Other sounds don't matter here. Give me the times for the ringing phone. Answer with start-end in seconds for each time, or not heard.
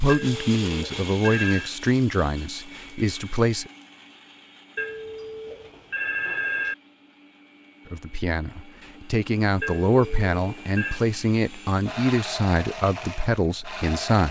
0.1-1.7, 4.8-6.8, 9.6-11.0.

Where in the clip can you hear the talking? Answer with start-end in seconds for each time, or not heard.
0.0-3.7, 7.9-14.2.